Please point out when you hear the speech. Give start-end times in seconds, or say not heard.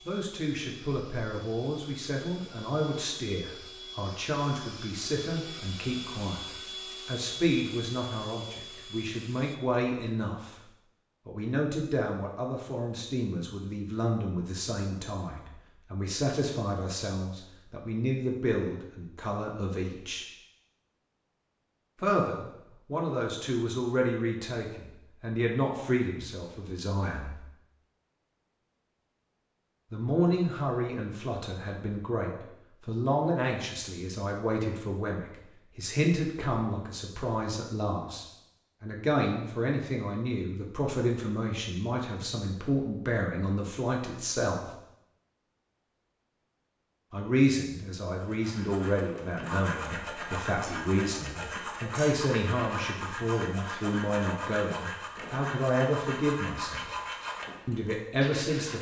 0.1-10.6, 11.2-20.2, 22.0-27.4, 29.9-44.6, 47.1-56.9, 57.6-58.7.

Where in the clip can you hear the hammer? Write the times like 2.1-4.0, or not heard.
not heard.